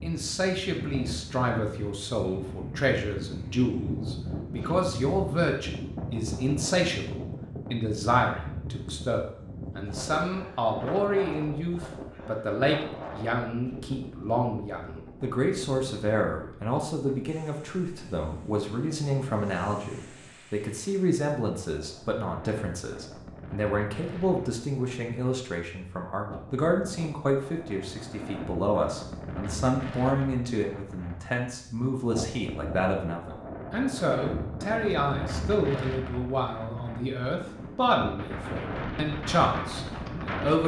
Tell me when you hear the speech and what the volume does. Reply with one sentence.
You can hear the speech from 0.0 to 40.6 s, at a steady volume.